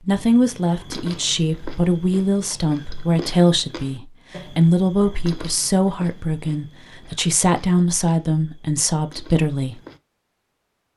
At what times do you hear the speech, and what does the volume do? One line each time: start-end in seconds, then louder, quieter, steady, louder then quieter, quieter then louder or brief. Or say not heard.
0.0-9.8 steady.